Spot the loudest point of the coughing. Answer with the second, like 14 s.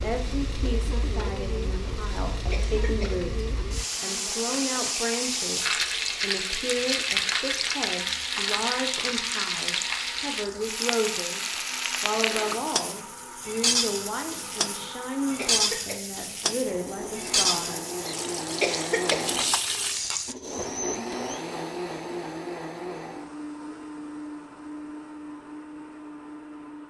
19 s.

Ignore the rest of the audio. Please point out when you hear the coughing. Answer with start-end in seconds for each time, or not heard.
2.5-3.2, 15.3-16.1, 18.6-19.4.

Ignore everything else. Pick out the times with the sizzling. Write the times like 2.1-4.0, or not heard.
0.0-20.4.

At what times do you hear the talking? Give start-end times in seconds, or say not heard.
0.0-11.4, 12.0-17.8.